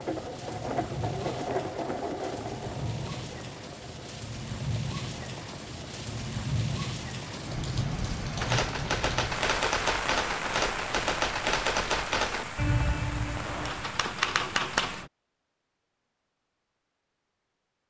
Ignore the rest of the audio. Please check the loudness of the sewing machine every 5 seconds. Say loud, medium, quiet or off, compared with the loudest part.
loud, medium, off, off.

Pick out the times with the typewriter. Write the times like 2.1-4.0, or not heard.
8.4-15.1.